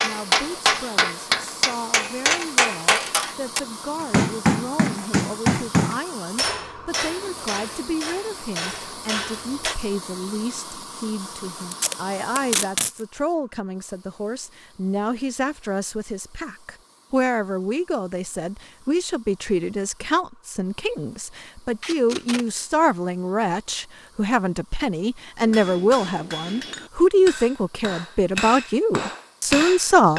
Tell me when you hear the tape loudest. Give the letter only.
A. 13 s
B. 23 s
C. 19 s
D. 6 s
A.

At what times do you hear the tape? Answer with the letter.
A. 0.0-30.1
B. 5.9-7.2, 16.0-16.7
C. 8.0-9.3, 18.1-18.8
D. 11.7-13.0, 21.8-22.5
D.